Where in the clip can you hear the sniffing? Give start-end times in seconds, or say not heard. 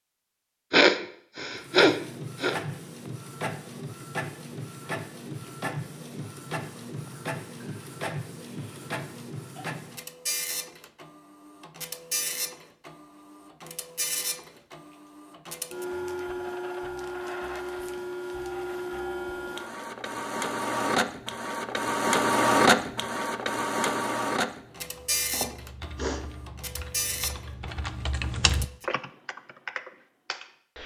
0.7-2.5, 25.3-26.2.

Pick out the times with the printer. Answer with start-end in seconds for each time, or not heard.
1.5-28.9.